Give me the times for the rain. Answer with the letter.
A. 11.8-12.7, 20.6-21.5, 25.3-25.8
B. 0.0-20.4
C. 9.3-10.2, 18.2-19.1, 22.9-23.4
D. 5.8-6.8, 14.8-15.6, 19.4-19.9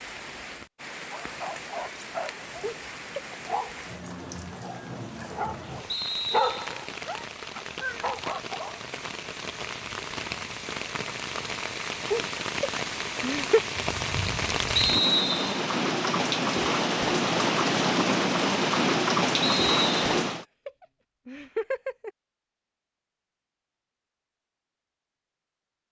B.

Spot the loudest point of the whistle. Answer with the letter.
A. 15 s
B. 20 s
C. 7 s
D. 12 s
A.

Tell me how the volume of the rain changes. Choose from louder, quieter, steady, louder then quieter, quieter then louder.
louder.